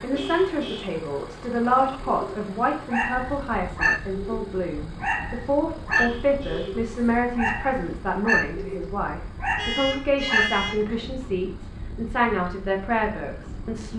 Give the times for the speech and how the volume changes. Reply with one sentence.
The speech can be heard from 0.0 to 13.9 s, at a steady volume.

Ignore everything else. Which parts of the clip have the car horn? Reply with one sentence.
The car horn can be heard from 0.1 to 0.9 s, from 5.9 to 6.8 s and from 9.6 to 10.8 s.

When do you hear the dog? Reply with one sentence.
The dog can be heard from 1.6 to 11.1 s.